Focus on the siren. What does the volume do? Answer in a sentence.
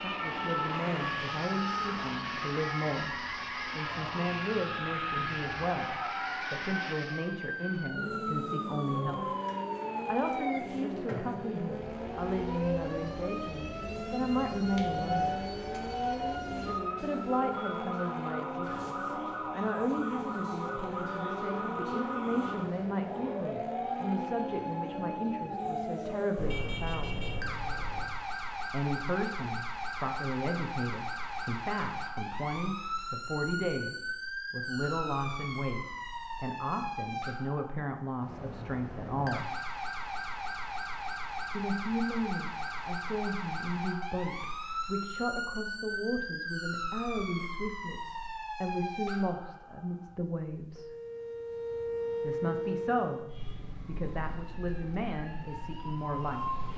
The volume of the siren stays about the same.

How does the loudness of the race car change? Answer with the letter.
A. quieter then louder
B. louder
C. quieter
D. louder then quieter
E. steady
E.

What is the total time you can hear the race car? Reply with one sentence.
You can hear the race car for 27 seconds altogether.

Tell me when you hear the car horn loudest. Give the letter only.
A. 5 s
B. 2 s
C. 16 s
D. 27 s
D.